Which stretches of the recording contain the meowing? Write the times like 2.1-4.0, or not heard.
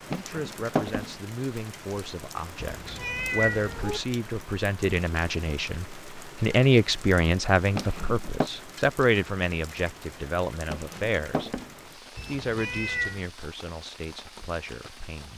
2.6-4.0, 12.2-13.2.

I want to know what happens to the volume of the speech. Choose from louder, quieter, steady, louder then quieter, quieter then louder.
louder then quieter.